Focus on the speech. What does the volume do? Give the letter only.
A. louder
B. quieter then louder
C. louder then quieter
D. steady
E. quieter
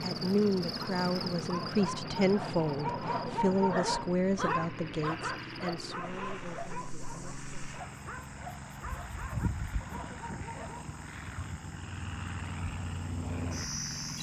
E.